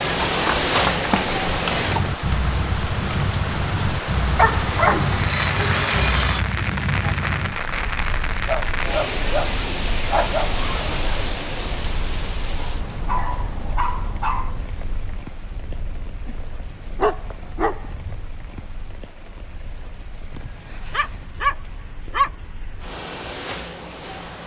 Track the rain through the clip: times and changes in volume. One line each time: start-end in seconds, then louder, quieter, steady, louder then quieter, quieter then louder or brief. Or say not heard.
0.0-24.4 quieter.